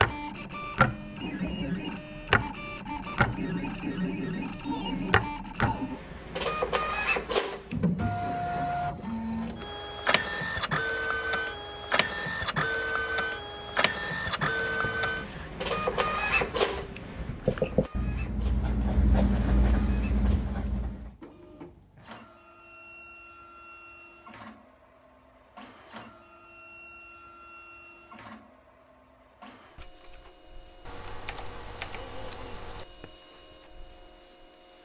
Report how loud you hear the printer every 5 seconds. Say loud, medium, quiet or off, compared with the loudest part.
loud, loud, loud, loud, quiet, quiet, quiet.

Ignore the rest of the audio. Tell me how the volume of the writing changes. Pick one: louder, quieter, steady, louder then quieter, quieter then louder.
louder.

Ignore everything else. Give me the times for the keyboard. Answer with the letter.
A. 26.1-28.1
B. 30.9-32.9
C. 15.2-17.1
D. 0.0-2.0
B.